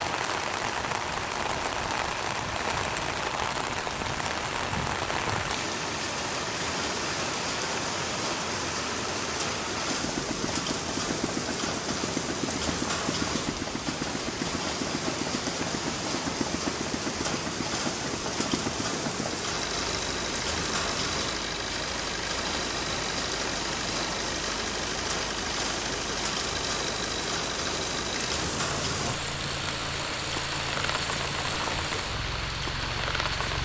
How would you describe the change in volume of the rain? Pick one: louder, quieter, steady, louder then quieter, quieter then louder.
steady.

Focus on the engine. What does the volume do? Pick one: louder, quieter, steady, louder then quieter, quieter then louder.
steady.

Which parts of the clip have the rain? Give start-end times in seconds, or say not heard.
0.0-33.5.